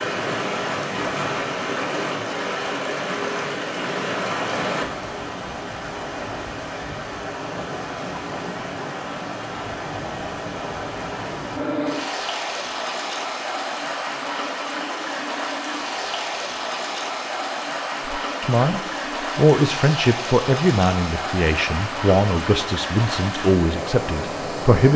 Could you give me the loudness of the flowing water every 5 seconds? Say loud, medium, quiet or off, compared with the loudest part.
loud, medium, loud, loud, loud.